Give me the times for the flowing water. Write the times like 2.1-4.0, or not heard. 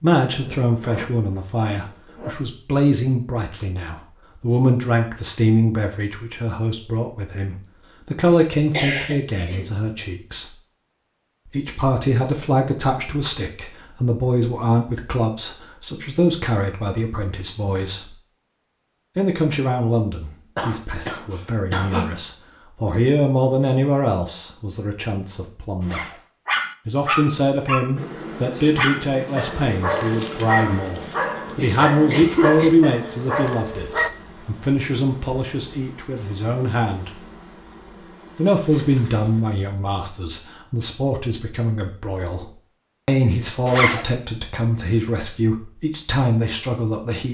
not heard.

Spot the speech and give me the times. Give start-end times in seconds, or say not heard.
0.0-10.5, 11.4-18.1, 19.1-26.1, 26.9-37.2, 38.4-47.2.